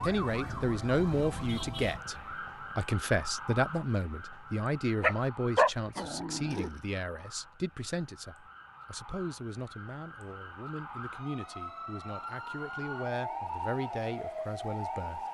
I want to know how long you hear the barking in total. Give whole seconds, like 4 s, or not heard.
2 s.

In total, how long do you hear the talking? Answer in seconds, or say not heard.
15 s.